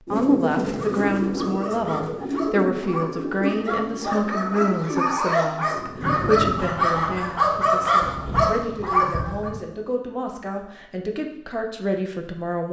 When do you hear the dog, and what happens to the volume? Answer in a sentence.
The dog can be heard from 0.7 to 9.5 s, getting louder.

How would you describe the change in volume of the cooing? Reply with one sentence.
The loudness of the cooing goes down.